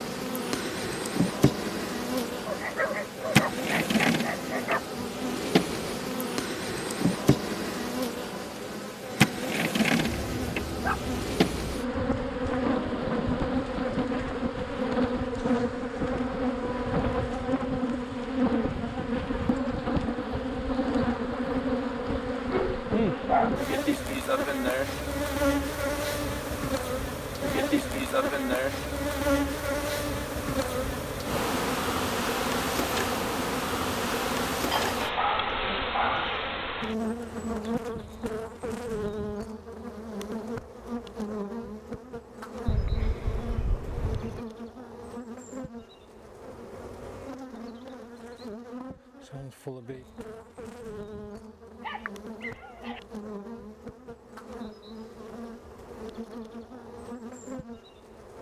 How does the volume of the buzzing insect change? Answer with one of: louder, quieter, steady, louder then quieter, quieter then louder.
quieter.